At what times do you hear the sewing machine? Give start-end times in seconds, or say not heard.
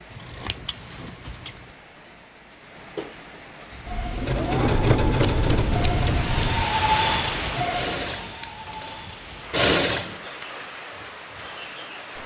3.7-10.2.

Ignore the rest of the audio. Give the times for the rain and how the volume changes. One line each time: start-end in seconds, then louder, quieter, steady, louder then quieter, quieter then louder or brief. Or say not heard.
0.0-12.2 louder then quieter.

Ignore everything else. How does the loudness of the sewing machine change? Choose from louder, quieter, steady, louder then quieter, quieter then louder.
quieter then louder.